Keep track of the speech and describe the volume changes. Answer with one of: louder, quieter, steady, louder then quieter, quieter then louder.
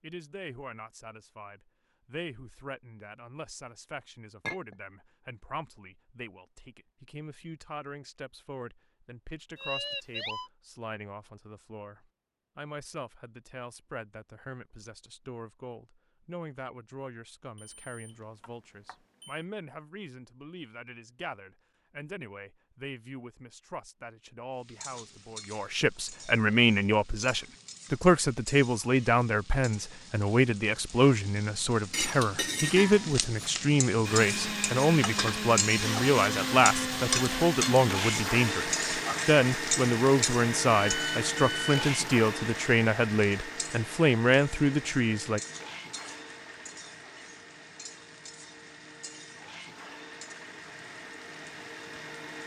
louder.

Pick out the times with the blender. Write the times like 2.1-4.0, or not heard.
34.0-52.4.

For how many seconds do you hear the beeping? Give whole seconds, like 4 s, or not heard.
4 s.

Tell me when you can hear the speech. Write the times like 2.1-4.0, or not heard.
0.0-45.4.